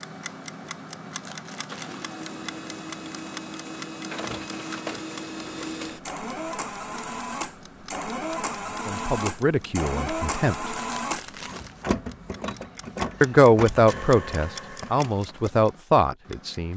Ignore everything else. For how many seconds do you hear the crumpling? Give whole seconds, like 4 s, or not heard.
2 s.